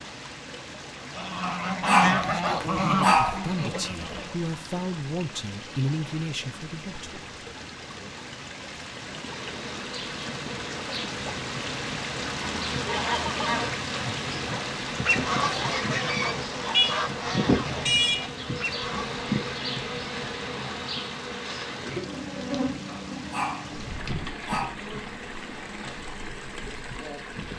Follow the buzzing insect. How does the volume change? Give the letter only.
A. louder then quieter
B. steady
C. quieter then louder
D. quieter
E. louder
A.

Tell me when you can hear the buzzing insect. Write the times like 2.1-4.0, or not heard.
9.2-27.5.